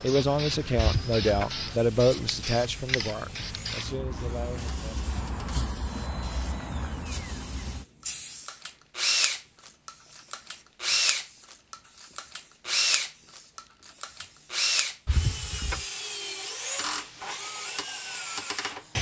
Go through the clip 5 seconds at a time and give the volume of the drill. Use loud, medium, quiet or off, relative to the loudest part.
quiet, medium, loud, medium.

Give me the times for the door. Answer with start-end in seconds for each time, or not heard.
0.8-1.5, 15.1-15.8.